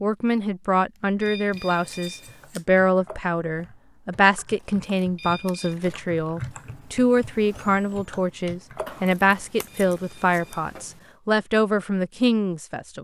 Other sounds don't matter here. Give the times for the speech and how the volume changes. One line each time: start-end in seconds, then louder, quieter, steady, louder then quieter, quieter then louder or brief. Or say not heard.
0.0-12.9 steady.